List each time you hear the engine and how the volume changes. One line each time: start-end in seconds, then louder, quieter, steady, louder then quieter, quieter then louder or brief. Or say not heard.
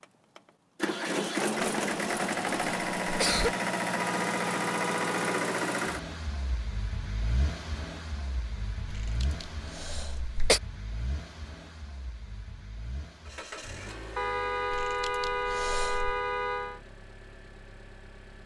0.0-18.4 quieter.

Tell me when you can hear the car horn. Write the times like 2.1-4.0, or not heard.
4.0-5.4, 14.2-16.8.